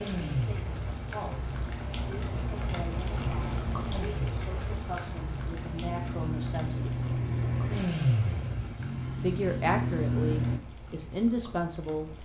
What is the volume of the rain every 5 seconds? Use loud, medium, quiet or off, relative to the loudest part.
loud, medium, medium.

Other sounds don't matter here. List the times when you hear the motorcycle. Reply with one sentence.
The motorcycle can be heard from 0.0 to 10.6 s.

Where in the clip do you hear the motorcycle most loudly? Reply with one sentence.
The loudest moment of the motorcycle is at 8 seconds.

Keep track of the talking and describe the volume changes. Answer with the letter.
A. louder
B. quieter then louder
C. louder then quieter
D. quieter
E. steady
A.